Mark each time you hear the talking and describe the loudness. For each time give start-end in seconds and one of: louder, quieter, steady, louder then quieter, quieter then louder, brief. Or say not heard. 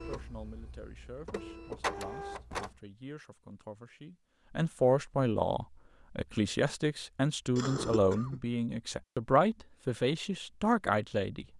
0.1-11.5 louder.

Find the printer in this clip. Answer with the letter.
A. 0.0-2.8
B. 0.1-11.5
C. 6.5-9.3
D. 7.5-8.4
A.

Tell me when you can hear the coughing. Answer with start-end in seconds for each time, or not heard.
7.5-8.4.